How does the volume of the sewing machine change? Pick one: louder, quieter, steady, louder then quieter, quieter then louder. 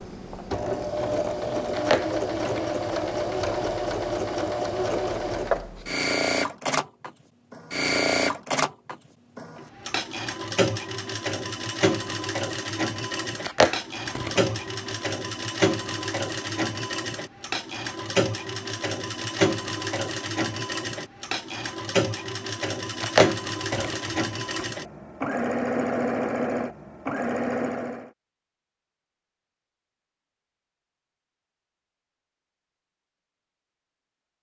steady.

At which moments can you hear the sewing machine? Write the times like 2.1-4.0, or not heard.
0.0-28.1.